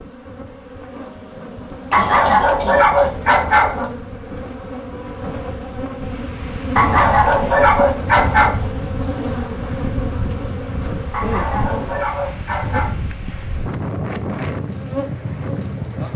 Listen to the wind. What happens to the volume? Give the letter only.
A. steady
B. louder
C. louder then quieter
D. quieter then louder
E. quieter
B.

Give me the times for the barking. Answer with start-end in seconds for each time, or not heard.
1.9-3.9, 6.8-8.6, 11.1-12.9.